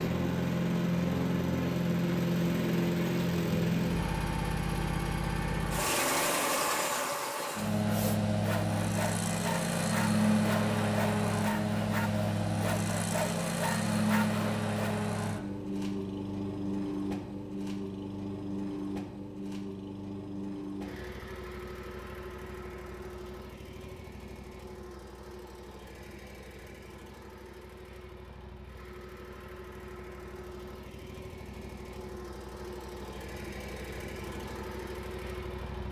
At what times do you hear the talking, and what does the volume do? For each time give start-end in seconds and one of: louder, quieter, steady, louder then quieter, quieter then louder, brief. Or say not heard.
not heard.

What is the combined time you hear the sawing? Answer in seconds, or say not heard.
7 s.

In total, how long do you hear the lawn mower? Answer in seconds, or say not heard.
36 s.